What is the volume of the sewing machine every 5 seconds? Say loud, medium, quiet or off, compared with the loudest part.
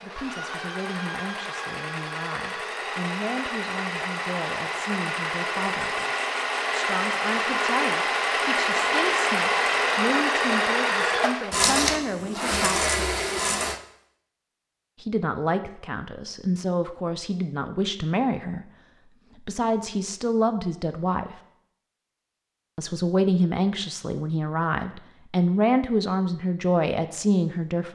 medium, loud, loud, off, off, off.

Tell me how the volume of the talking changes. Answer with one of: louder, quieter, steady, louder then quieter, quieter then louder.
louder.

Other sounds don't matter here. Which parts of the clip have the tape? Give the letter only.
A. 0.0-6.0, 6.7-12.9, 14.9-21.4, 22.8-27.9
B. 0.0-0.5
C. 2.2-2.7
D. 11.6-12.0
D.